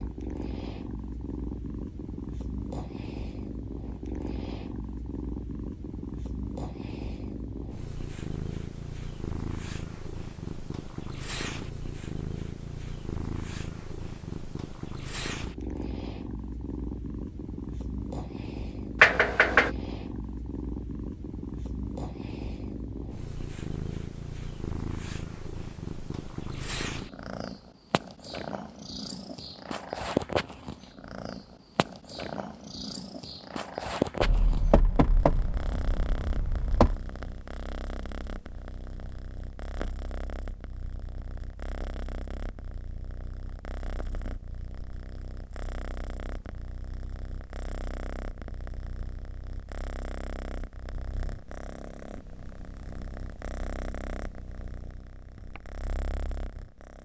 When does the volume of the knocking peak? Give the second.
19 s.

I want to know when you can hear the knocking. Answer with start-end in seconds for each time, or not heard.
19.0-19.7, 34.2-37.0.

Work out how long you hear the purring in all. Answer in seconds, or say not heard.
57 s.